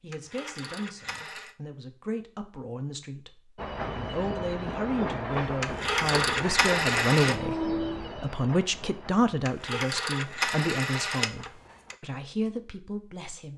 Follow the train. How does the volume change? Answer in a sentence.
The loudness of the train goes down.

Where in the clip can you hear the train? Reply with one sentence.
The train can be heard from 3.5 to 12.0 s.